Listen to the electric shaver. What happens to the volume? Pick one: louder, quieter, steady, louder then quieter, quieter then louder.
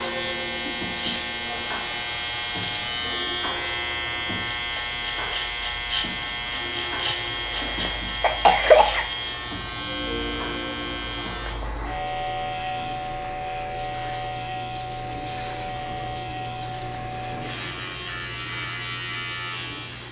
quieter.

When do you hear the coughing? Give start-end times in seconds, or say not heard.
7.5-9.1.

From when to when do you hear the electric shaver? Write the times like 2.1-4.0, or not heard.
0.0-20.0.